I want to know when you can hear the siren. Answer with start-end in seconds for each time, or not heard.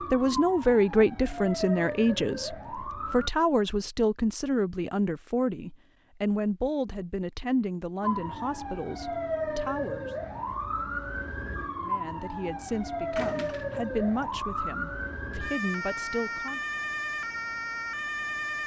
0.0-3.3, 8.0-18.6.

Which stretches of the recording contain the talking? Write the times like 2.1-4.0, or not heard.
0.1-10.1, 11.8-16.6.